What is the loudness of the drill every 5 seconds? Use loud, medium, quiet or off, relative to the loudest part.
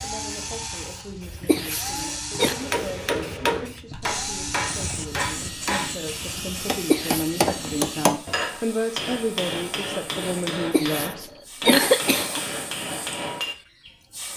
loud, loud, off.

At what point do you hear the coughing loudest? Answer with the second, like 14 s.
12 s.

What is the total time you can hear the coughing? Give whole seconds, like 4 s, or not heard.
3 s.